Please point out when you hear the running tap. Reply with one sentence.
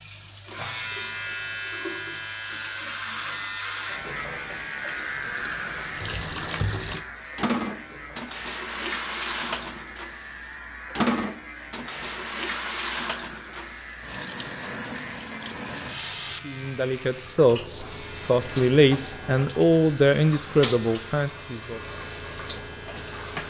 The running tap can be heard from 0.0 to 23.4 s.